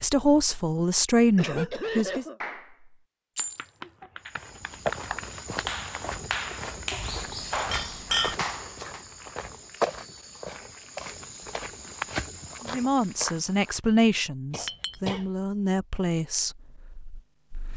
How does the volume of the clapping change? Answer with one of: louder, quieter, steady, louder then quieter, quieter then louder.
louder.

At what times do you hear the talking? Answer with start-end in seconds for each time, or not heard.
0.0-2.2, 12.7-17.7.